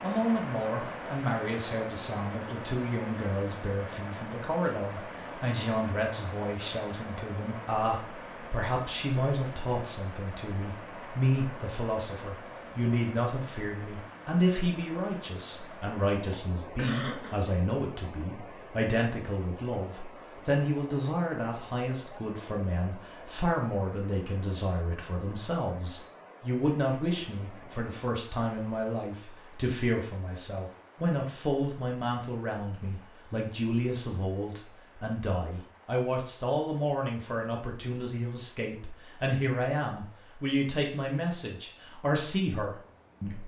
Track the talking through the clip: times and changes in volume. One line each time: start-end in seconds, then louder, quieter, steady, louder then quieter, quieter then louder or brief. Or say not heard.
0.0-43.4 steady.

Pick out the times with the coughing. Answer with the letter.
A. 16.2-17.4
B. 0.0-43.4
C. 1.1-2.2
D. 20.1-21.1
A.